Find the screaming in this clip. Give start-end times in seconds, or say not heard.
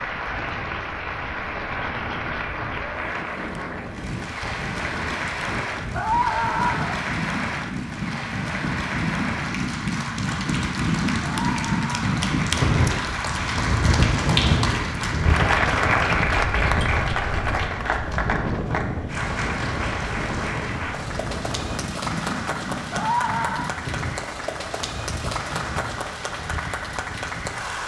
6.0-7.0, 11.2-12.1, 22.9-23.7.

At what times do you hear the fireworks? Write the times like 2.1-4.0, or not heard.
not heard.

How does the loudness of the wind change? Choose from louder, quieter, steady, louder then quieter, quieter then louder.
louder then quieter.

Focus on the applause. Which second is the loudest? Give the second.
16 s.